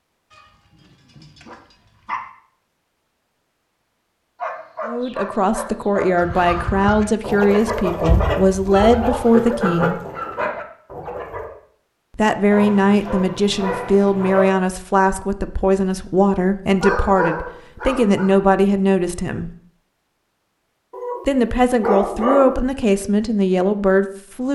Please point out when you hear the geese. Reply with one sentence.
You can hear the geese from 6.2 to 11.5 s.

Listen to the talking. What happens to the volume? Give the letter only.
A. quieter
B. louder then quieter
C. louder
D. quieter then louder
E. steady
E.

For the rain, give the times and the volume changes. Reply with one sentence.
The rain can't be heard in this clip.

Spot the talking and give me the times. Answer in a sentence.
The talking can be heard from 4.8 to 10.0 s, from 12.2 to 19.5 s and from 21.2 to 24.5 s.